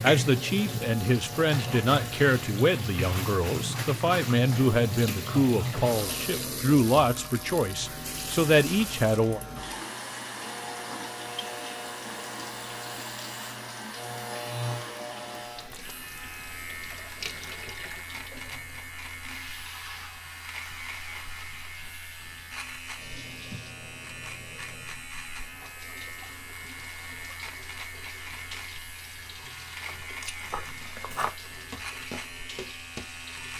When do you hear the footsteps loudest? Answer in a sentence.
The loudest moment of the footsteps is at 31 seconds.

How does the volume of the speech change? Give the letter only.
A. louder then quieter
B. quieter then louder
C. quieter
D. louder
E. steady
E.